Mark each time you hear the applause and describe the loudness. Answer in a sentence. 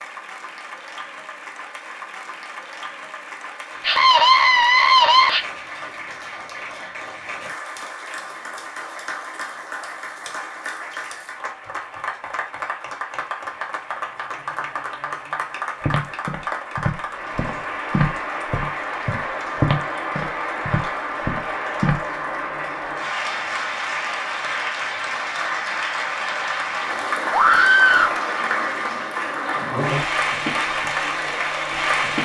The applause can be heard from 0.0 to 32.1 s, getting louder.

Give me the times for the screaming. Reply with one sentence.
You can hear the screaming from 3.8 to 5.5 s and from 27.3 to 28.1 s.